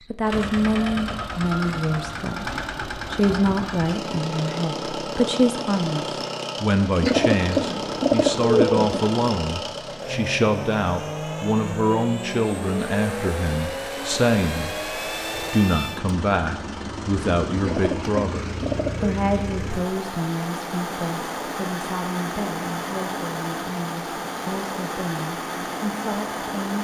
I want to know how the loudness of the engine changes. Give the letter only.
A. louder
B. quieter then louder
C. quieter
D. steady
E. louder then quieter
D.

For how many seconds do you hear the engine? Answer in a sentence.
The engine can be heard for 27 seconds in total.